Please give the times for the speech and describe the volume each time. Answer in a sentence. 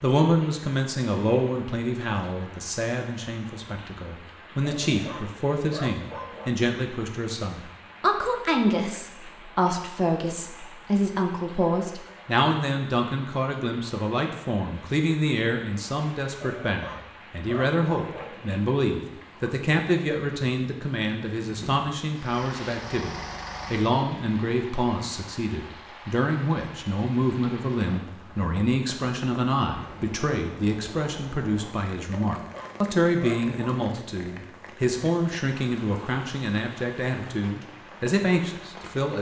The speech can be heard from 0.0 to 39.1 s, at a steady volume.